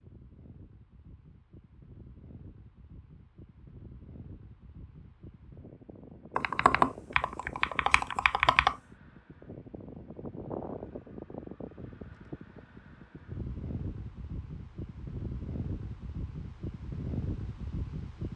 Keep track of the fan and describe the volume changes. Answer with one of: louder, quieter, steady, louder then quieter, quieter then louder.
louder.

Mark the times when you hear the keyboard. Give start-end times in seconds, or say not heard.
6.3-8.8.